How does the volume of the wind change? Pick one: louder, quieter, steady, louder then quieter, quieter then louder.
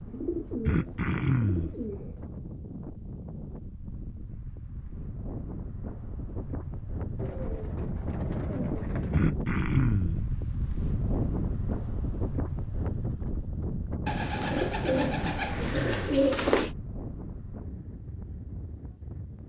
louder then quieter.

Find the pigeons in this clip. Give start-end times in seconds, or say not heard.
0.1-2.4, 7.2-9.2, 14.1-16.7.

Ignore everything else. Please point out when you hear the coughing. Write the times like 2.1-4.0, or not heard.
0.7-1.8, 9.1-10.2, 15.2-16.1.